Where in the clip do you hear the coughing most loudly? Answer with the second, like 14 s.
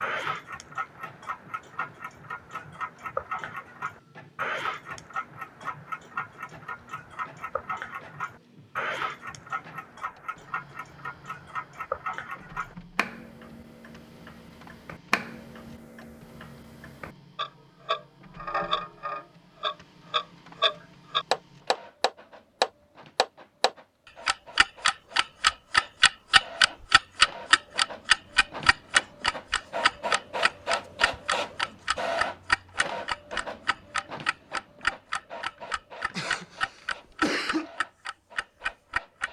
37 s.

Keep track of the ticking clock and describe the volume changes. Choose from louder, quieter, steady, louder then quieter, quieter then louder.
louder then quieter.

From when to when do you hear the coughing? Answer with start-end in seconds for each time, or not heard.
36.1-37.7.